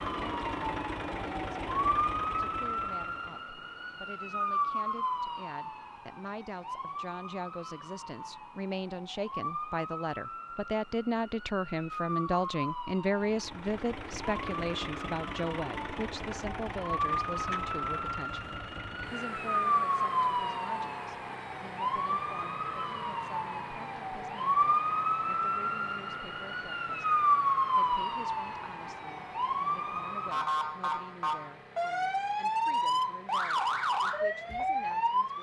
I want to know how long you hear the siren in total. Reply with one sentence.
The siren can be heard for 35 seconds in total.